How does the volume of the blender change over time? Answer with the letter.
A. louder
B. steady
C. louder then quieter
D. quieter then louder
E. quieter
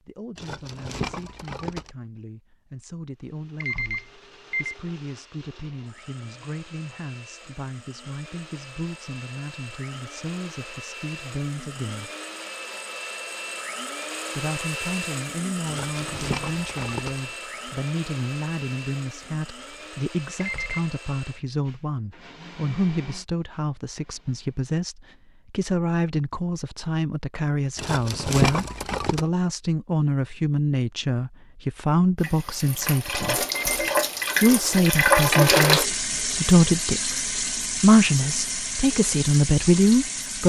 C.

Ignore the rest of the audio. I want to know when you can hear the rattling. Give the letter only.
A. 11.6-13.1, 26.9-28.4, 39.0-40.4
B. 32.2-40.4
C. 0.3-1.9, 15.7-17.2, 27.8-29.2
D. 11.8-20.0
C.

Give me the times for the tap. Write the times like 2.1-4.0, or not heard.
32.2-40.4.